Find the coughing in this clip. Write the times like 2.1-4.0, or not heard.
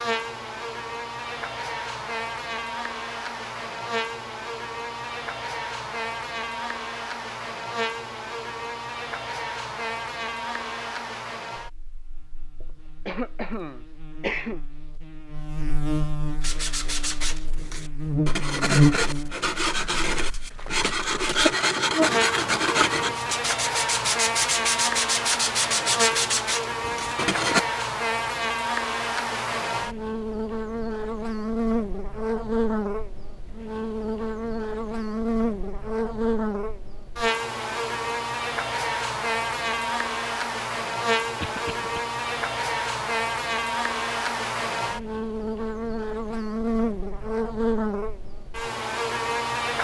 12.6-14.6, 41.4-42.0.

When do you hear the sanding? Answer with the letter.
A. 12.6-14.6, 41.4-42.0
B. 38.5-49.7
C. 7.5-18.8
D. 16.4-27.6
D.